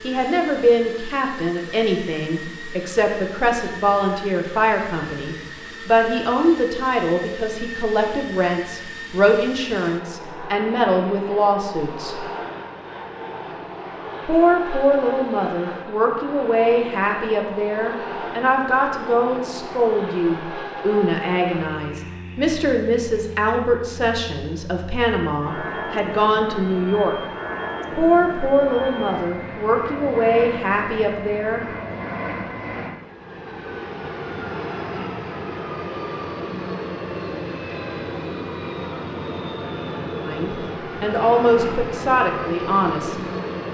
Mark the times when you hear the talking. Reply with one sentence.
You can hear the talking from 0.0 to 12.2 s, from 14.2 to 27.2 s, from 27.9 to 31.6 s and from 40.2 to 43.2 s.